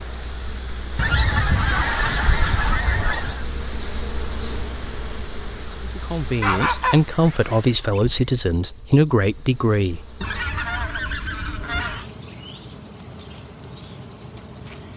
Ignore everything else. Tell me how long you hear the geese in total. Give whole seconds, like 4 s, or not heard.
6 s.